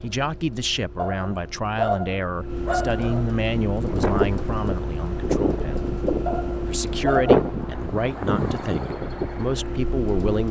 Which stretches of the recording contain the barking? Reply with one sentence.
The barking can be heard from 0.9 to 3.4 s and from 6.2 to 7.4 s.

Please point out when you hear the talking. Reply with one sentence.
You can hear the talking from 0.0 to 5.9 s and from 6.7 to 10.4 s.